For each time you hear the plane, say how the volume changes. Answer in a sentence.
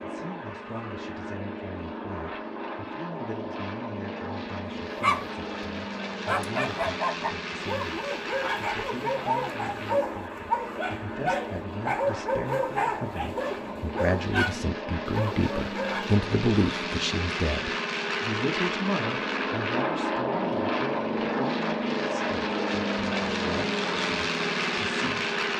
The plane can be heard from 0.0 to 25.5 s, getting louder.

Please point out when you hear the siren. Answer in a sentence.
You can't hear the siren here.